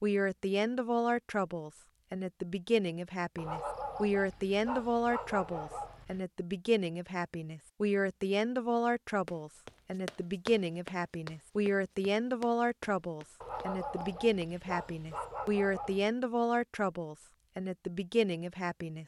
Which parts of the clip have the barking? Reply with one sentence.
The barking can be heard from 3.4 to 6.2 s and from 13.4 to 16.1 s.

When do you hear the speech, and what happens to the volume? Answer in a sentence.
The speech can be heard from 0.0 to 19.0 s, at a steady volume.